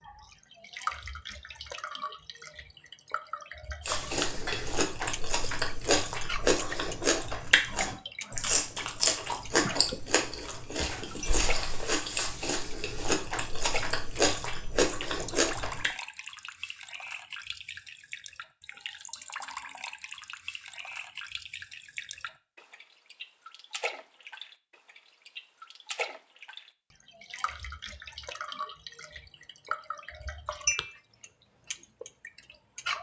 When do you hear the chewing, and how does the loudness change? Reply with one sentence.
You can hear the chewing from 3.9 to 15.9 s, at a steady volume.